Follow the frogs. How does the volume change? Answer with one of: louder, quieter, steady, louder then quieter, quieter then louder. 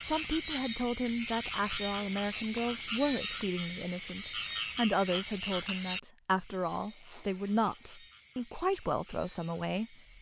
quieter.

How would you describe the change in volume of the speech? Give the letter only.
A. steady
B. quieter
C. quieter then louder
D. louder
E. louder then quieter
A.